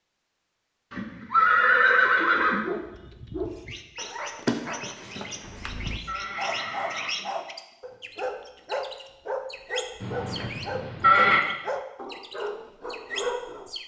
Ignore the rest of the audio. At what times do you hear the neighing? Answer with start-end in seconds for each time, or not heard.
0.9-2.6, 5.0-7.2, 10.0-11.4.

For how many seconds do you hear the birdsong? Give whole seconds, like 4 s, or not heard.
10 s.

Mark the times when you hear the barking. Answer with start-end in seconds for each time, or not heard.
2.5-13.7.